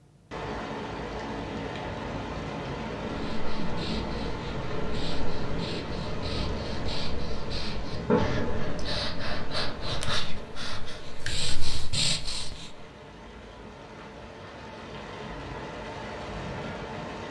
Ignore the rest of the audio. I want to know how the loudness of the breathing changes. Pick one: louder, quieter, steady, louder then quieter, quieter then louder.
louder.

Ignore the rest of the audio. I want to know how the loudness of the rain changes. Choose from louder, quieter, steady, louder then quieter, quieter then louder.
quieter then louder.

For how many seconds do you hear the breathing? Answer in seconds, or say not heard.
10 s.